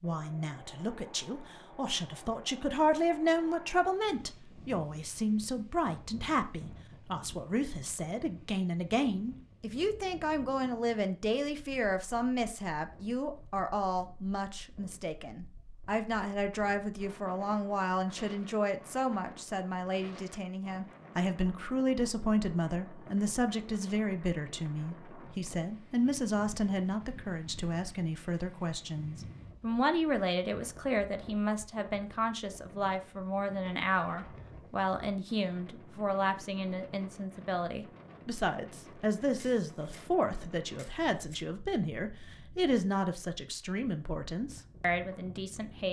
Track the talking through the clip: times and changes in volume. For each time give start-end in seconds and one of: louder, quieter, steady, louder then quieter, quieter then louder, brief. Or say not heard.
0.0-45.8 steady.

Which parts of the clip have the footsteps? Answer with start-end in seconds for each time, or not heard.
not heard.